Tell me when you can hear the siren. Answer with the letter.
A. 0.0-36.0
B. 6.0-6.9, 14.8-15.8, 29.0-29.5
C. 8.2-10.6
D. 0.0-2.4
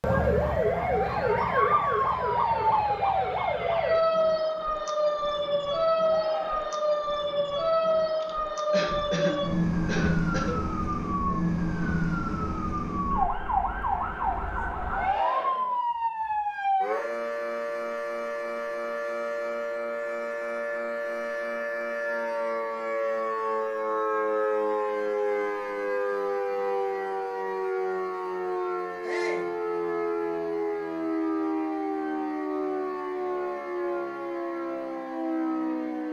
A.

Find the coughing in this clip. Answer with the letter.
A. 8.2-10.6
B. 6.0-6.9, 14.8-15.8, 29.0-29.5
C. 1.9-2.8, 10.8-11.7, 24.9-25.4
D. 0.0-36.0
A.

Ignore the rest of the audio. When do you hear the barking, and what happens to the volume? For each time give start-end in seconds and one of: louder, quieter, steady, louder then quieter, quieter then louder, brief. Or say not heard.
not heard.